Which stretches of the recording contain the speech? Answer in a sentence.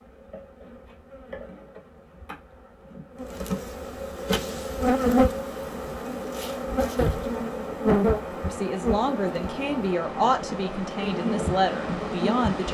You can hear the speech from 8.4 to 12.6 s.